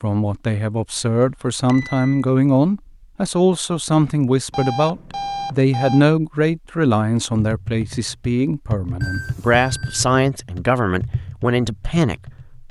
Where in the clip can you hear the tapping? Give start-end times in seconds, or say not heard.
7.4-12.6.